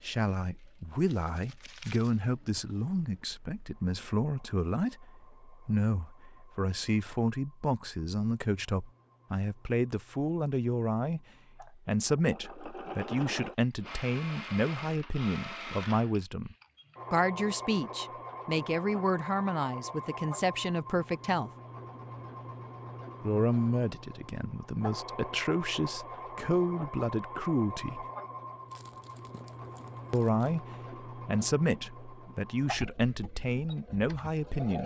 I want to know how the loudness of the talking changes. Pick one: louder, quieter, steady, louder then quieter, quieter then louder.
steady.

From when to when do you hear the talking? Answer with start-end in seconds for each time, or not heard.
0.0-21.5, 23.2-28.1, 30.1-34.8.